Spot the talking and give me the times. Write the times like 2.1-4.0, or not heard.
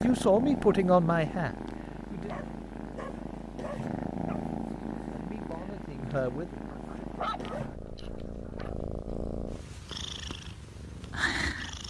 0.0-2.3, 5.1-7.2.